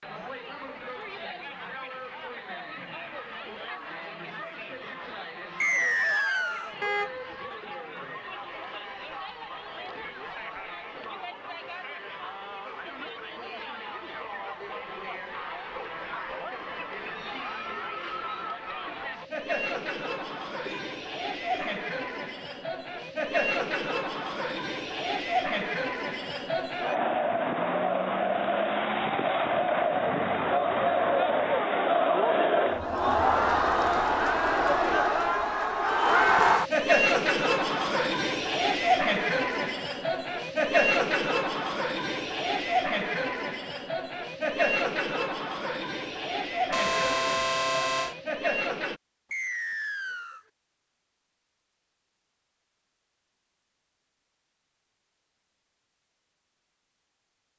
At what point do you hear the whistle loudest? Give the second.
6 s.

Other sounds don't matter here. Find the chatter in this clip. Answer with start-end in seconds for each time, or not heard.
0.0-49.0.